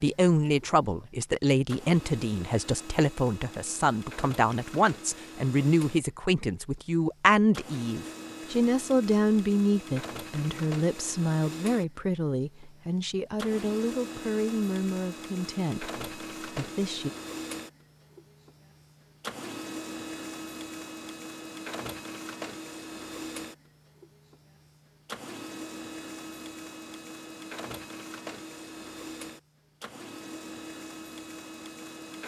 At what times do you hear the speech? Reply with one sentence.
You can hear the speech from 0.0 to 17.1 s.